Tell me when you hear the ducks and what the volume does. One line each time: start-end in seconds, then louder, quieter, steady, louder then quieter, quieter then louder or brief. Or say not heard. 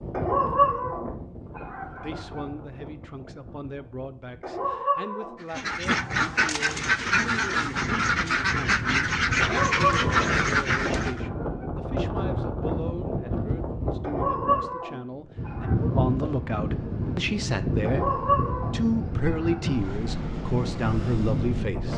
5.5-11.2 steady.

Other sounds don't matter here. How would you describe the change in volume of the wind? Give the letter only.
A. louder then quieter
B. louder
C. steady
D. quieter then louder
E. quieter
B.